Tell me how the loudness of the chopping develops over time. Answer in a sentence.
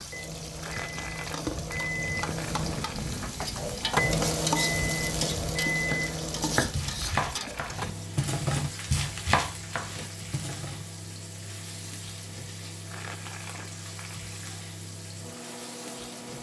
The volume of the chopping goes up, then down.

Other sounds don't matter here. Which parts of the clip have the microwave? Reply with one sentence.
You can hear the microwave from 0.0 to 16.3 s.